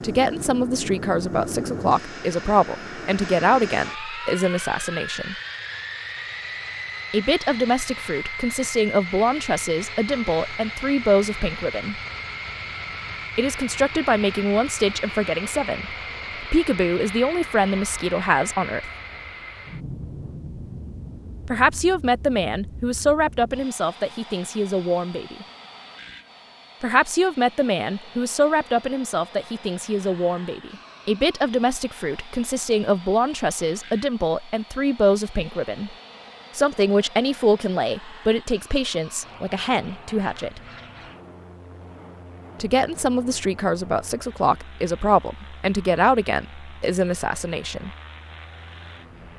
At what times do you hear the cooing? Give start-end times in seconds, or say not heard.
not heard.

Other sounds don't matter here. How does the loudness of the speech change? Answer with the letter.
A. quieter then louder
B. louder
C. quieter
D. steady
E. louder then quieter
D.